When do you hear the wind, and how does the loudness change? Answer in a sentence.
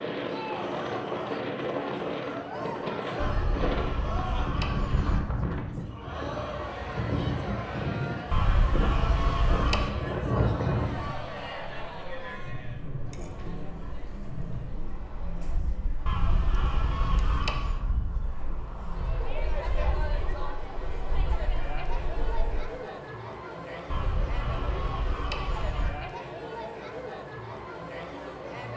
The wind can be heard from 0.0 to 22.6 s, getting quieter.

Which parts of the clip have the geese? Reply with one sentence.
The geese can be heard from 3.2 to 5.2 s, from 8.3 to 9.9 s, from 16.1 to 17.8 s and from 23.9 to 25.9 s.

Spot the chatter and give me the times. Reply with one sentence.
You can hear the chatter from 0.1 to 28.7 s.